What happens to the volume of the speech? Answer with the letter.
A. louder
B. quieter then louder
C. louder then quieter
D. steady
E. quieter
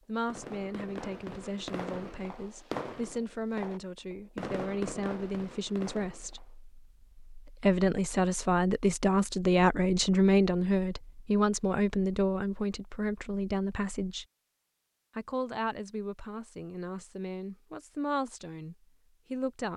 C.